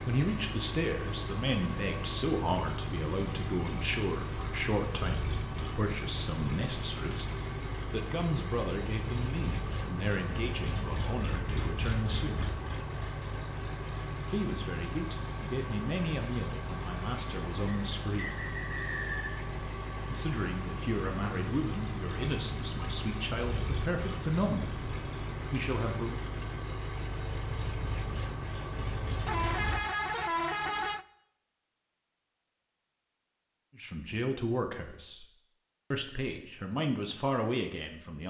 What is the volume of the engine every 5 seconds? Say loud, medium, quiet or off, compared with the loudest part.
loud, loud, loud, loud, loud, loud, off, off.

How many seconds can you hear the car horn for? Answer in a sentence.
You can hear the car horn for 2 seconds altogether.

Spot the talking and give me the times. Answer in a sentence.
The talking can be heard from 0.1 to 12.5 s, from 14.2 to 18.4 s, from 20.1 to 24.8 s, from 25.5 to 26.2 s, from 33.8 to 35.2 s and from 35.9 to 38.2 s.